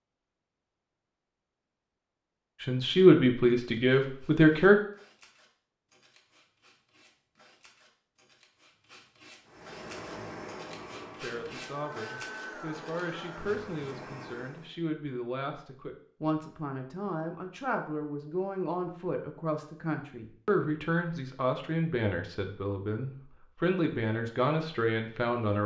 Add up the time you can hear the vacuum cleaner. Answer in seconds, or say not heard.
5 s.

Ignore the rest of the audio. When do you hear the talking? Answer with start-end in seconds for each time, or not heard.
2.6-4.8, 11.2-25.6.